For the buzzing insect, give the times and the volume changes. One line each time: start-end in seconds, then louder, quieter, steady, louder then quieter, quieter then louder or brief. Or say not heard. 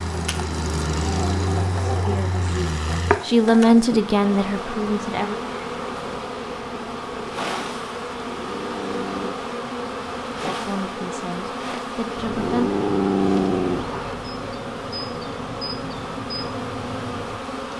0.0-17.7 steady.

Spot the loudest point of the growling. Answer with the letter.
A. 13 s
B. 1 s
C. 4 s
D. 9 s
A.